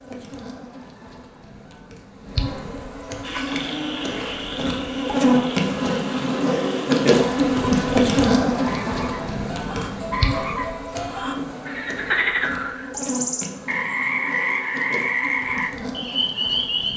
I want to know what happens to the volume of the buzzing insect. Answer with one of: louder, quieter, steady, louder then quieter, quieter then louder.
louder then quieter.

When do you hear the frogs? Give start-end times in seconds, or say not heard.
3.2-16.9.